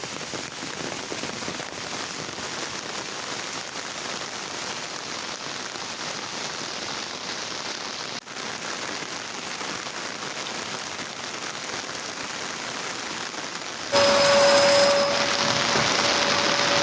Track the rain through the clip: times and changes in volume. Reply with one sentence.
You can hear the rain from 0.0 to 16.7 s, getting louder.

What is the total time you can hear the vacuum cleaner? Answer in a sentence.
You can hear the vacuum cleaner for 3 seconds altogether.